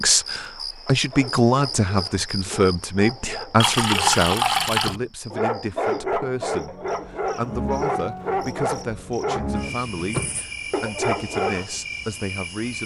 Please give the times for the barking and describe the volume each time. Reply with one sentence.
The barking can be heard from 0.8 to 11.8 s, getting louder.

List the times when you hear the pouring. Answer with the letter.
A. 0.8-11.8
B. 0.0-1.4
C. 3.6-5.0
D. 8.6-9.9
C.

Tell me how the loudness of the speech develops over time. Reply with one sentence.
The volume of the speech goes down.